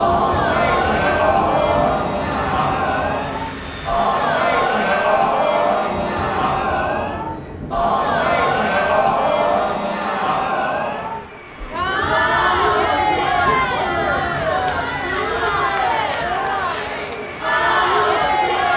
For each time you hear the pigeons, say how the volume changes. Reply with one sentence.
You can't hear the pigeons here.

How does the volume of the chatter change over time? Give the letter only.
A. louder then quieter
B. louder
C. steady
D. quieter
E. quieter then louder
C.